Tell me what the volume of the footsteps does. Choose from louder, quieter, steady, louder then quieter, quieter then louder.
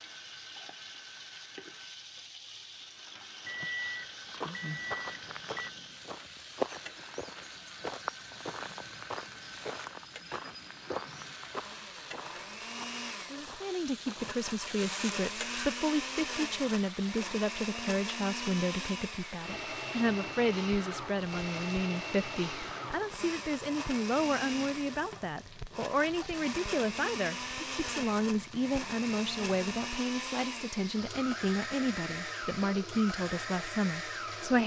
louder then quieter.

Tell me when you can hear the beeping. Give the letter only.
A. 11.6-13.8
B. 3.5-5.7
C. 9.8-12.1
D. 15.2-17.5
B.